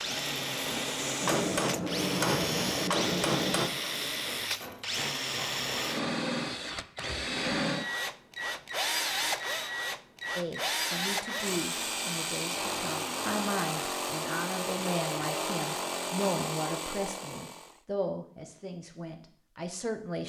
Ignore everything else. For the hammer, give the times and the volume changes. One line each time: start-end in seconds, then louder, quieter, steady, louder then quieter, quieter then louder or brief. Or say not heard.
1.2-7.2 quieter.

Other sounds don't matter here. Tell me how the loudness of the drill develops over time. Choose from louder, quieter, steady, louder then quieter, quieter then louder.
steady.